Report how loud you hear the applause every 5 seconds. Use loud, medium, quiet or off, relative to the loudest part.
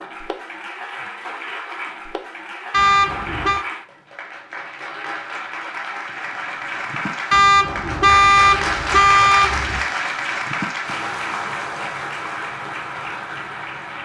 medium, loud, loud.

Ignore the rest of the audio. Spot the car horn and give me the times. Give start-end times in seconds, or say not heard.
2.7-3.6, 7.3-9.8.